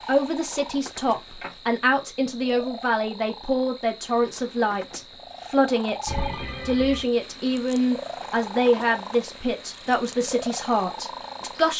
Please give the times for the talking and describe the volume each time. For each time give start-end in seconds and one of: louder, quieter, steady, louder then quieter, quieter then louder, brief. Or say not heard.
0.1-11.7 steady.